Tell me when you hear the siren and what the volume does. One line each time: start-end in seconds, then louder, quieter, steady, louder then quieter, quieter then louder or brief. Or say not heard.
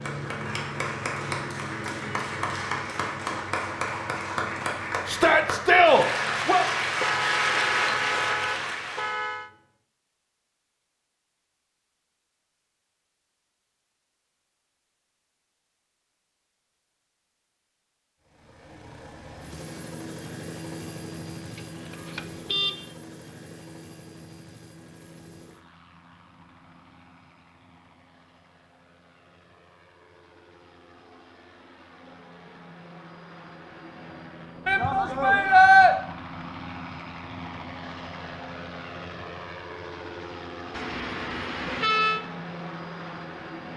not heard.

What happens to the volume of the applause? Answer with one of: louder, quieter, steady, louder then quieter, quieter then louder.
louder.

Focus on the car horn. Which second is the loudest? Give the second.
42 s.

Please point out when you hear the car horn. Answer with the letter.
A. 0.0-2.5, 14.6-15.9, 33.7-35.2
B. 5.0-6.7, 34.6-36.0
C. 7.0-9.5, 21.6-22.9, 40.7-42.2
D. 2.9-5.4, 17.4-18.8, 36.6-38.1
C.